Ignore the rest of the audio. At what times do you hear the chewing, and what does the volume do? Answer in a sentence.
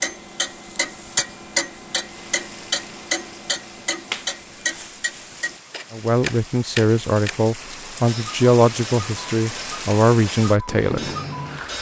The chewing can't be heard in this clip.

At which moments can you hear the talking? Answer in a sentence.
The talking can be heard from 5.9 to 11.1 s.